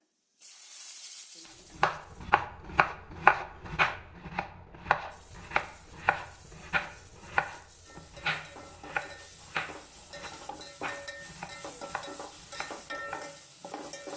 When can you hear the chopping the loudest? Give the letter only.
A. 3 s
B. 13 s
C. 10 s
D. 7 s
A.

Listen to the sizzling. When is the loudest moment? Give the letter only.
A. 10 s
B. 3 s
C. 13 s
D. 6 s
C.